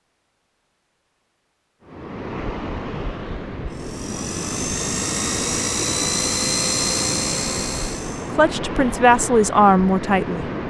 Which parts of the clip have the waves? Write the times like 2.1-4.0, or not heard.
1.8-10.6.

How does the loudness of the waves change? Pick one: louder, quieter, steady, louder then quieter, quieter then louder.
steady.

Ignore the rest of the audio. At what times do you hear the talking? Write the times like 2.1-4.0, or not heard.
8.3-10.4.